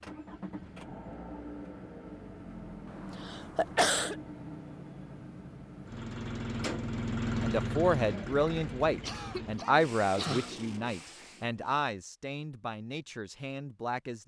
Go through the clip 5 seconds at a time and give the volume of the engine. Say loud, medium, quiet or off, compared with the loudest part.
medium, loud, medium.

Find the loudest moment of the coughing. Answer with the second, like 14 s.
4 s.